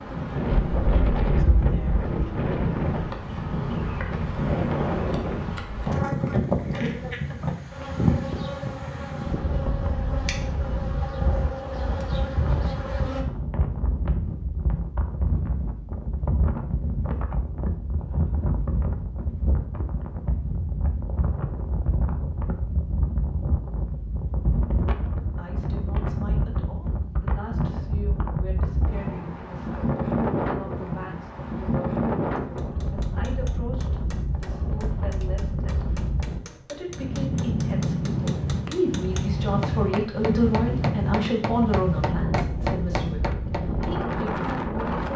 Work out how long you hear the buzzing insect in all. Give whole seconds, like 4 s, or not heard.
13 s.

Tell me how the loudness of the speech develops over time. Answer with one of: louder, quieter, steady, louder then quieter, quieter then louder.
louder.